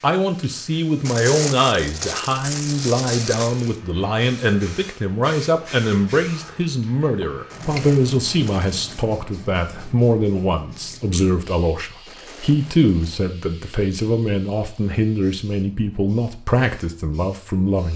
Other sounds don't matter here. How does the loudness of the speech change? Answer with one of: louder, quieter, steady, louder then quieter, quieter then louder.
steady.